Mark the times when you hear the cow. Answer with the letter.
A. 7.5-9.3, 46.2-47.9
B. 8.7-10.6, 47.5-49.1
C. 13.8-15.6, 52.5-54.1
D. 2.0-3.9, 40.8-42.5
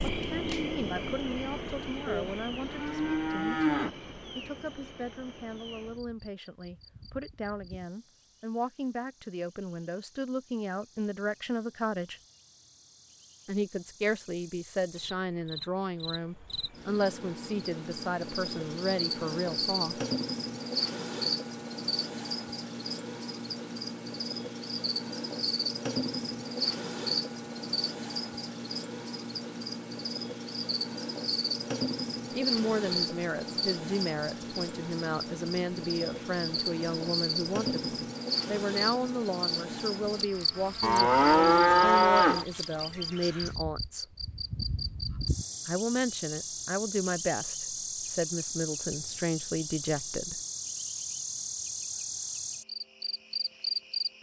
D.